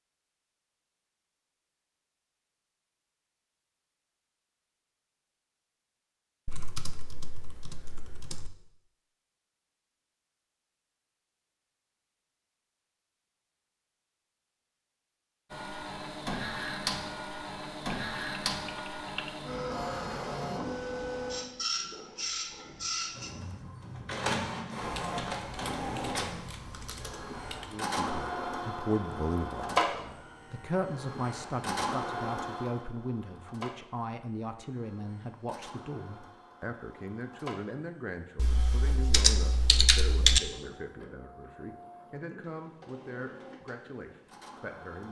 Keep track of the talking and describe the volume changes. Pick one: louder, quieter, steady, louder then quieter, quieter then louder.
quieter.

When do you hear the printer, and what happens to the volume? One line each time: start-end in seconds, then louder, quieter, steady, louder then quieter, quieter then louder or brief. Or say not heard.
15.5-45.0 quieter.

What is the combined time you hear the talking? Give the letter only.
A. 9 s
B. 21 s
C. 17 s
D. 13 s
C.